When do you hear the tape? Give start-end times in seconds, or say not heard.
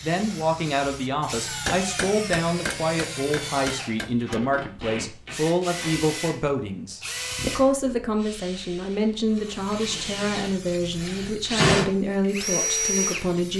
4.2-6.0.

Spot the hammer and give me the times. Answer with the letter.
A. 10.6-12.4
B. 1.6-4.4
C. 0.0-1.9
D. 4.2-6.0
B.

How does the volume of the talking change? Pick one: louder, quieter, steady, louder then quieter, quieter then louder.
steady.